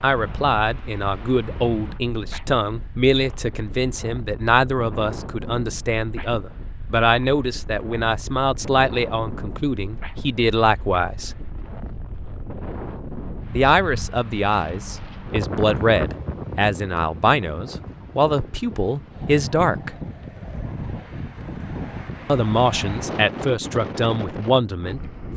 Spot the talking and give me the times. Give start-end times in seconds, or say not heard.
0.0-11.3, 13.5-19.9, 22.2-25.0.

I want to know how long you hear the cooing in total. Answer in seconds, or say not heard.
not heard.